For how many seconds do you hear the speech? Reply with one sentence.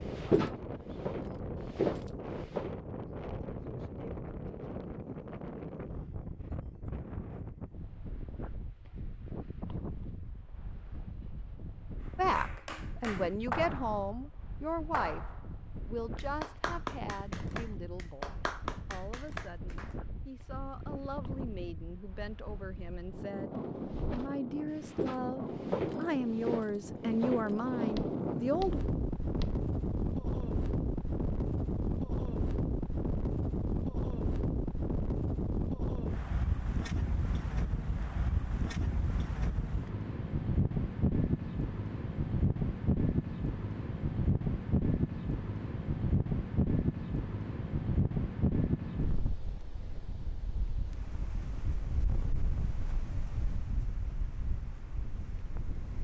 The speech can be heard for 16 seconds in total.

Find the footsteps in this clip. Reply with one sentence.
You can hear the footsteps from 0.1 to 2.7 s and from 23.6 to 29.6 s.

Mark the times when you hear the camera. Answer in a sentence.
The camera can't be heard in this clip.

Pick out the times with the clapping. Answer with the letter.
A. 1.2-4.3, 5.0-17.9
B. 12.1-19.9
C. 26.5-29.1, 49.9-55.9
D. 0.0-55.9
B.